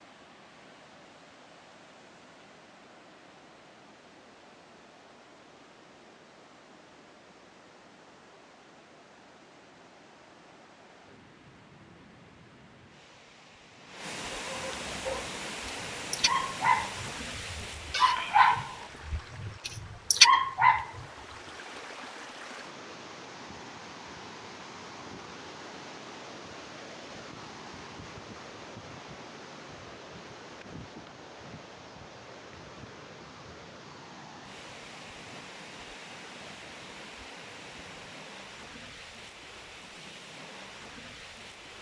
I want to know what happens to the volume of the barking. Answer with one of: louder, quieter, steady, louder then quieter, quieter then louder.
louder.